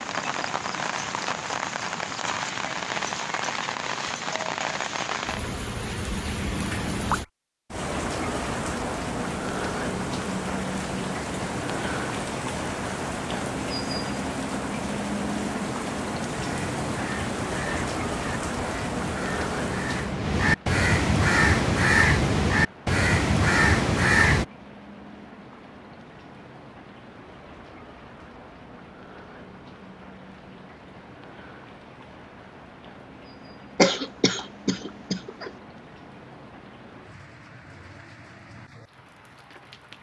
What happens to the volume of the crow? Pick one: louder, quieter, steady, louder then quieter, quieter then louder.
louder.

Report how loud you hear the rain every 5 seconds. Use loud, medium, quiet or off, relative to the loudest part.
loud, loud, loud, loud, quiet, quiet, quiet, quiet.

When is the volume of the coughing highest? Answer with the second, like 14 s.
34 s.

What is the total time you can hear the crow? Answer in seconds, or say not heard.
8 s.